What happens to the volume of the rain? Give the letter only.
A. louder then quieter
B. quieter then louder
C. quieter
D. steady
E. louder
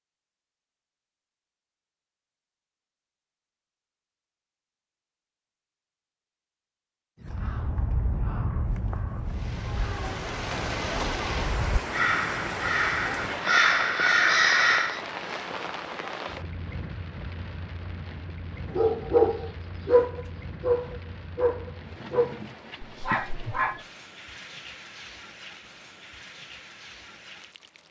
C.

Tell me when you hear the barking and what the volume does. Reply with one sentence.
You can hear the barking from 18.8 to 23.9 s, getting quieter.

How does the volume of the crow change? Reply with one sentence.
The volume of the crow goes down, then up.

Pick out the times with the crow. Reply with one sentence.
The crow can be heard from 7.2 to 15.0 s.